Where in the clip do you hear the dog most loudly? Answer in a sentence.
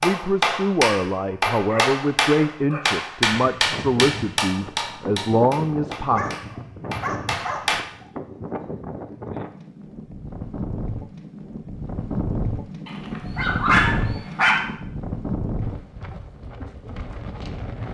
The loudest moment of the dog is at 14 seconds.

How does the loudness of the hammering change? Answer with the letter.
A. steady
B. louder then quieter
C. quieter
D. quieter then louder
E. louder
C.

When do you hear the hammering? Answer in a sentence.
The hammering can be heard from 0.0 to 7.8 s.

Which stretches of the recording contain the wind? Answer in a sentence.
You can hear the wind from 3.4 to 17.8 s.